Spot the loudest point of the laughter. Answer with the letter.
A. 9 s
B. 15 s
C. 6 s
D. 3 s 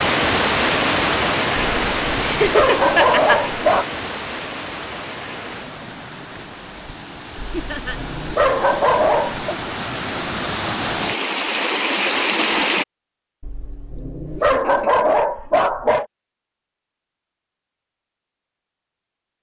D.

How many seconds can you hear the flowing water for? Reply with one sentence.
The flowing water can be heard for 13 seconds in total.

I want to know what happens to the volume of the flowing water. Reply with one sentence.
The loudness of the flowing water goes down, then up.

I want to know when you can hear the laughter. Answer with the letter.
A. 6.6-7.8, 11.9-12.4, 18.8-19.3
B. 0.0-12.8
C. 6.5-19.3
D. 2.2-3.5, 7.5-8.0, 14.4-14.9
D.